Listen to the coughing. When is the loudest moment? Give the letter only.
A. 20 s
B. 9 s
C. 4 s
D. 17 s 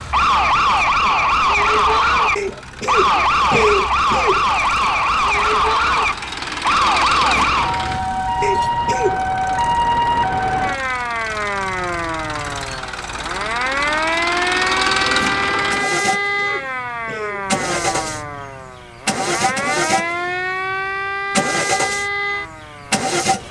C.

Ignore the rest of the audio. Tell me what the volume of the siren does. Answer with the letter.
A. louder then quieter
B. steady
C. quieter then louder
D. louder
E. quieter
E.